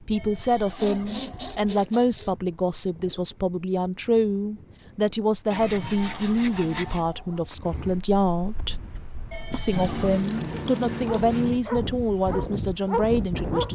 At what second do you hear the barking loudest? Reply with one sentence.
The loudest moment of the barking is at 13 seconds.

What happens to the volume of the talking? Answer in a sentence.
The volume of the talking stays about the same.